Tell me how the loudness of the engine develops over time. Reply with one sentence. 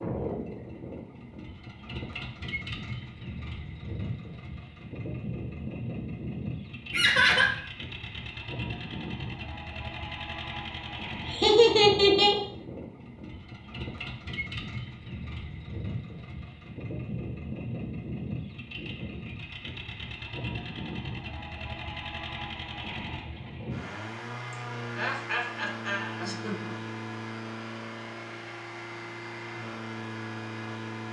The loudness of the engine stays about the same.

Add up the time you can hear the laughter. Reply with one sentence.
You can hear the laughter for 4 seconds altogether.